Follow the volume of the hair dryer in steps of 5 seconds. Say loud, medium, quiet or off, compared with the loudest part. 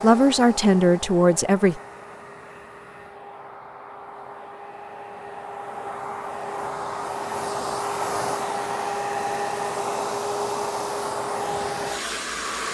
medium, loud, loud.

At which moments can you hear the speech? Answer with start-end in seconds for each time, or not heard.
0.0-1.8.